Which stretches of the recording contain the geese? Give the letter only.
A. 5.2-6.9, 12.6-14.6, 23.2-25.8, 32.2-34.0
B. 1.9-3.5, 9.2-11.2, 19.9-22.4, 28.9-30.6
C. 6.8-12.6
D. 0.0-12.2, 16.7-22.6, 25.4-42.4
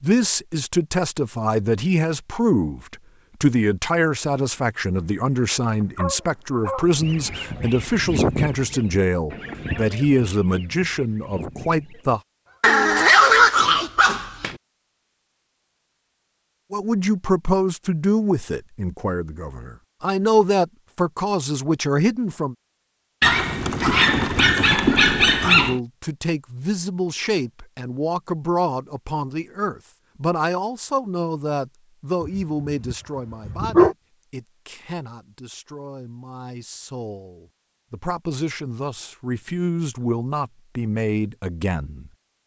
C.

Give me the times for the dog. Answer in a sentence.
The dog can be heard from 5.2 to 6.9 s, from 12.6 to 14.6 s, from 23.2 to 25.8 s and from 32.2 to 34.0 s.